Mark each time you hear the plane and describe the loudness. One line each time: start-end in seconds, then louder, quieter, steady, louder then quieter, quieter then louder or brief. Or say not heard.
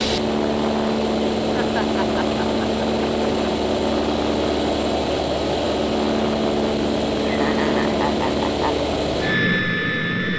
0.0-10.3 steady.